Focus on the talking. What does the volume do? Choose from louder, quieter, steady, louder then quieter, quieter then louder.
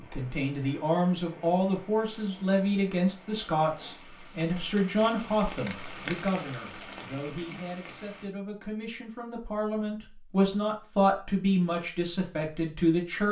quieter then louder.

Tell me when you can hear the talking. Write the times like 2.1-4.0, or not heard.
0.0-13.2.